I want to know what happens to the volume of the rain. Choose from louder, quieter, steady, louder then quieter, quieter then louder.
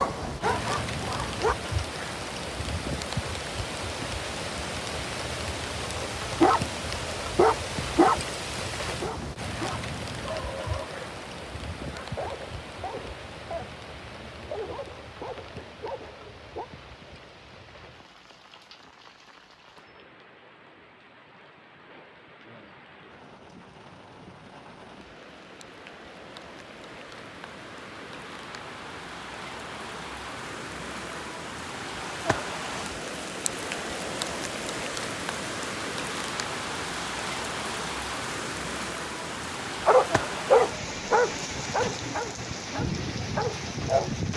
quieter then louder.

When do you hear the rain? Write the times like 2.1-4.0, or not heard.
0.0-44.3.